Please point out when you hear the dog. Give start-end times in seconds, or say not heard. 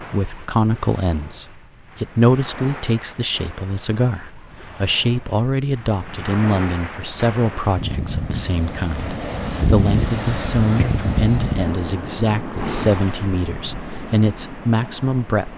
not heard.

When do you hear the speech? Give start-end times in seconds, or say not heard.
0.0-15.4.